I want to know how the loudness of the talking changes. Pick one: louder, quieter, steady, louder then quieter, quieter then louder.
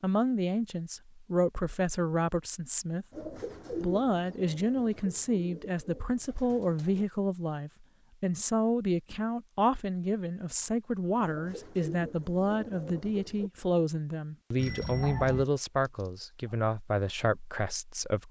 steady.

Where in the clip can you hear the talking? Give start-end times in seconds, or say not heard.
0.0-18.2.